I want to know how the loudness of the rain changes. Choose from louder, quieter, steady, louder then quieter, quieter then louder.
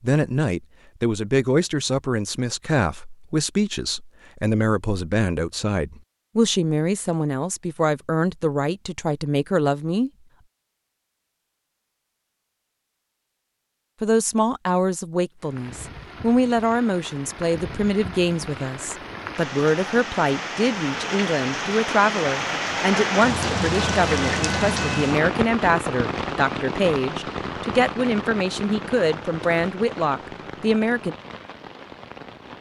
louder then quieter.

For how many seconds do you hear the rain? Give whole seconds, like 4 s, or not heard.
17 s.